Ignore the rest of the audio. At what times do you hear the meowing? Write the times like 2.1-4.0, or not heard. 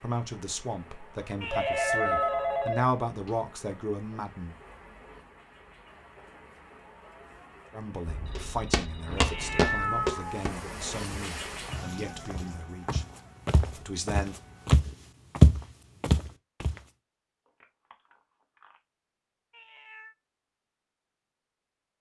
1.4-2.7, 9.2-10.4, 19.5-20.1.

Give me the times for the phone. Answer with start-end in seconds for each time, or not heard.
1.5-3.4, 8.1-10.1, 17.4-18.8.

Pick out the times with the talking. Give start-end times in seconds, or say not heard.
0.0-4.5, 7.7-13.1, 13.8-14.3.